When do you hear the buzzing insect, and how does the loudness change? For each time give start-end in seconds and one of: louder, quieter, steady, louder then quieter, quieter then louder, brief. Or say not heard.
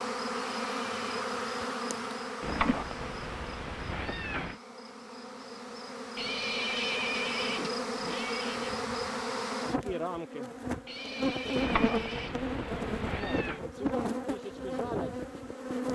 0.0-15.9 quieter then louder.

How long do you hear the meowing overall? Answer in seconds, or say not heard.
4 s.